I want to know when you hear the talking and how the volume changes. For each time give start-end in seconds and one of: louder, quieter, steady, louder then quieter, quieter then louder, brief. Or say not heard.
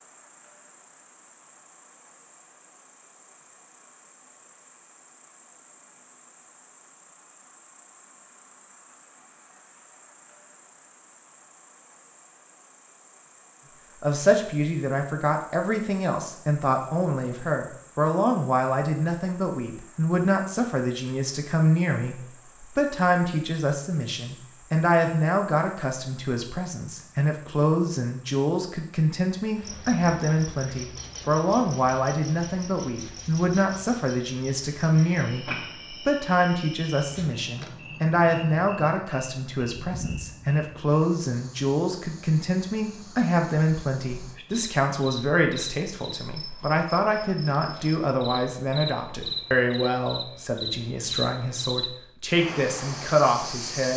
14.0-53.9 steady.